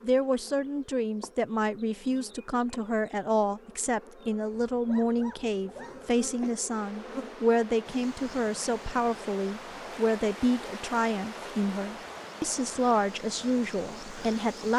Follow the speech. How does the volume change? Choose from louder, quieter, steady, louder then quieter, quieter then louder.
steady.